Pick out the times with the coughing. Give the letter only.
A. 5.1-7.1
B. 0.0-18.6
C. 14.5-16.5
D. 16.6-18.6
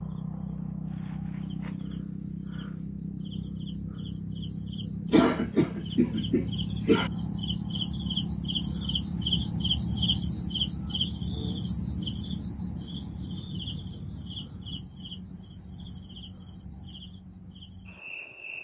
A.